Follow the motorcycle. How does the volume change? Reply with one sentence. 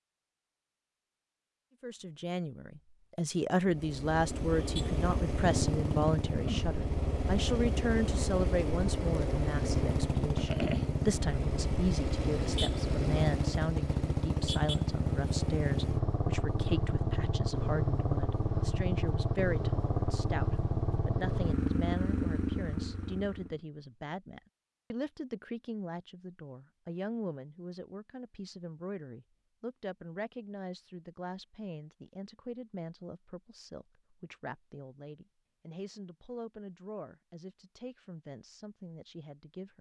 The volume of the motorcycle stays about the same.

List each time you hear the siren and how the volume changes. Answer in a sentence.
The siren can't be heard in this clip.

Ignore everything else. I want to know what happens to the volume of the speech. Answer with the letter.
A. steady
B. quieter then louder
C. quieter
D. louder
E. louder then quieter
C.